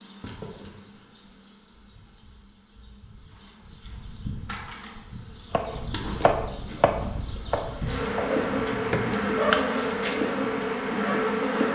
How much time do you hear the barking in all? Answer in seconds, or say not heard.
4 s.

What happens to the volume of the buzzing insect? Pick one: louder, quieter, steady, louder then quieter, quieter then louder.
louder.